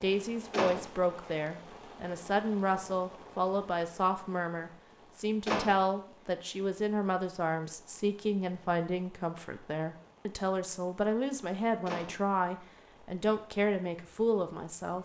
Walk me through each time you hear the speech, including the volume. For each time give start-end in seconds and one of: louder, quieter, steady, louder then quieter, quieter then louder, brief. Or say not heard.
0.0-15.0 steady.